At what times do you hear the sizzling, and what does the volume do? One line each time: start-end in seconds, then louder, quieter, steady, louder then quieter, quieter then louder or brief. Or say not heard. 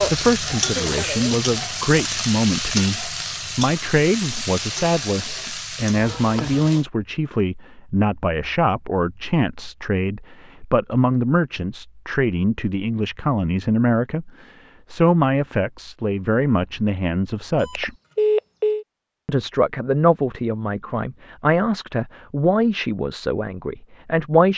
0.0-6.8 quieter.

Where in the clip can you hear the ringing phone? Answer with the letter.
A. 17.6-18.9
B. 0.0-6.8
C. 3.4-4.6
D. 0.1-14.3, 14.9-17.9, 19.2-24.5
A.